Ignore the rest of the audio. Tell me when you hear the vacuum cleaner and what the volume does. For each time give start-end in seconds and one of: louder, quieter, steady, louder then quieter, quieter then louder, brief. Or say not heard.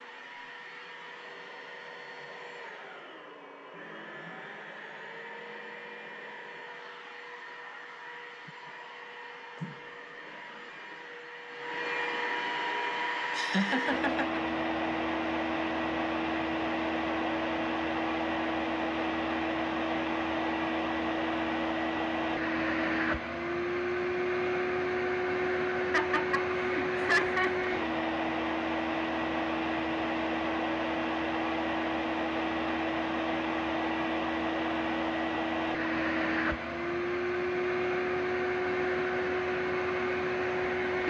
0.0-41.0 louder.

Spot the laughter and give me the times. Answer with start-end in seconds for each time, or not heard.
13.3-14.4, 25.9-27.6.